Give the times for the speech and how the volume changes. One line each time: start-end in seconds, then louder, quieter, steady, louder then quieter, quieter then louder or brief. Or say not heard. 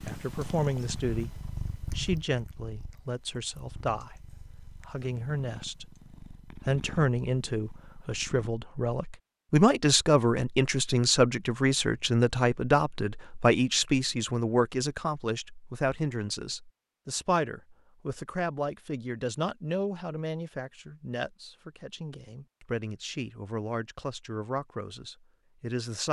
0.0-26.0 louder then quieter.